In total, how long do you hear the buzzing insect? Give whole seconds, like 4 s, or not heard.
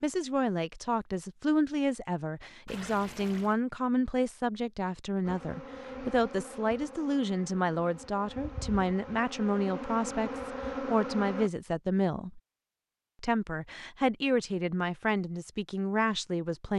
6 s.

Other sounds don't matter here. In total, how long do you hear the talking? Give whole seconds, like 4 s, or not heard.
16 s.